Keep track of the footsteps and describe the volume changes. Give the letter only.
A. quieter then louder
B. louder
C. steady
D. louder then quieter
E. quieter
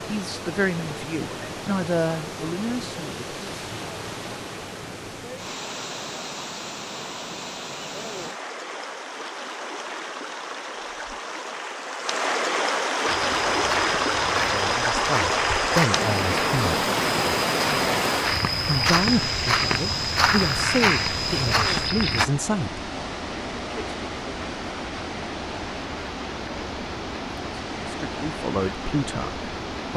B.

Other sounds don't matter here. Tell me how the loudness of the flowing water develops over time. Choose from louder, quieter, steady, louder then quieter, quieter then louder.
louder then quieter.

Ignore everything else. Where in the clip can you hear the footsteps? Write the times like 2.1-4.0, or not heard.
13.1-22.2.